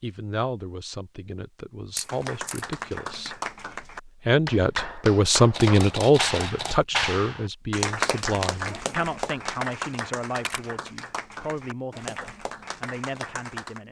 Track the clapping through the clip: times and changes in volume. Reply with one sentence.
You can hear the clapping from 2.0 to 13.8 s, getting louder then quieter.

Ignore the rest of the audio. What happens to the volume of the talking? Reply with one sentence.
The loudness of the talking goes up, then down.